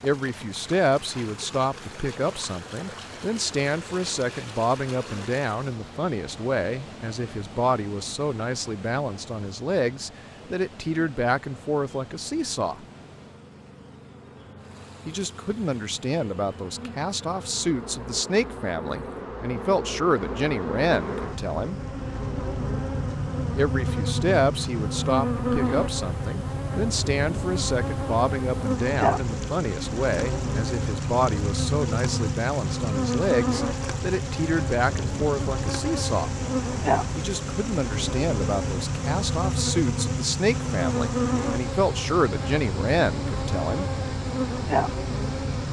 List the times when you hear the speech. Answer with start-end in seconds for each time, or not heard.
0.0-12.8, 15.1-21.8, 23.6-36.4, 37.1-43.9.